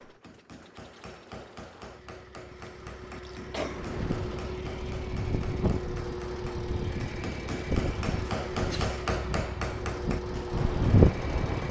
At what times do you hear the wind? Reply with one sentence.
You can hear the wind from 3.5 to 11.6 s.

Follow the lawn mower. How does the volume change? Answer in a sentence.
The loudness of the lawn mower goes up.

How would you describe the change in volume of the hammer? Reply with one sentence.
The loudness of the hammer goes up.